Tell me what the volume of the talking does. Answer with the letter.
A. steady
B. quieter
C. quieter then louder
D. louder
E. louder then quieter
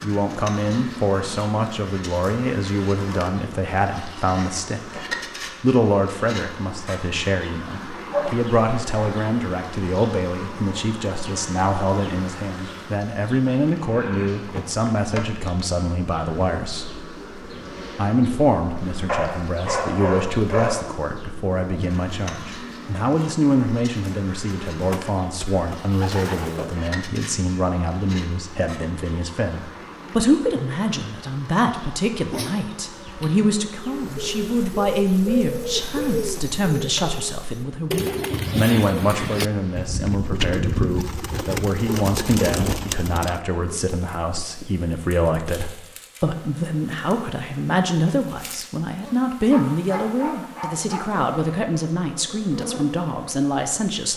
A.